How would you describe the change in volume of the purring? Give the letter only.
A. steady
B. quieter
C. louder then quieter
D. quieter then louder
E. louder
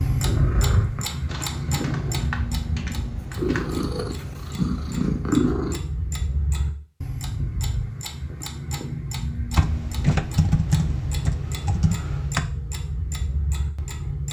D.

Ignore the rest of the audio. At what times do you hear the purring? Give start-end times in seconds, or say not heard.
0.0-5.8.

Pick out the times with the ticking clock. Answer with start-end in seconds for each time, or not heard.
0.0-14.2.